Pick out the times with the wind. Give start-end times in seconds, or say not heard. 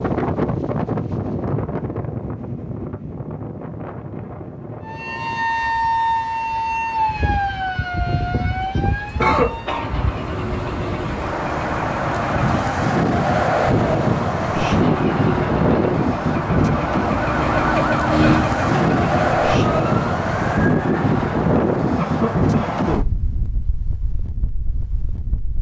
0.0-25.5.